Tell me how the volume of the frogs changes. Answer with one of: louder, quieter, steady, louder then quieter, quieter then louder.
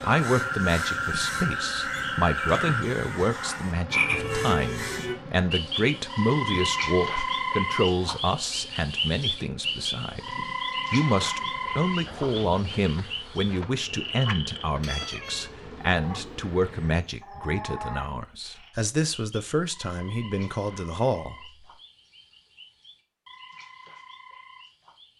quieter.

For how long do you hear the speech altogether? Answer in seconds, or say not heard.
22 s.